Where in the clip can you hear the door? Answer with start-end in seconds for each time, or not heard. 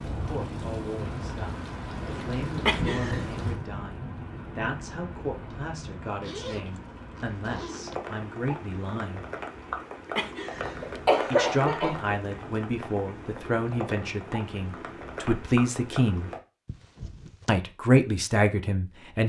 not heard.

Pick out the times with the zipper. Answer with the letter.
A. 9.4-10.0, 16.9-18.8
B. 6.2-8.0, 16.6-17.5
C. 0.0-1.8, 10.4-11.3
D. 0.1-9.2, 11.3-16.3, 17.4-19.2
B.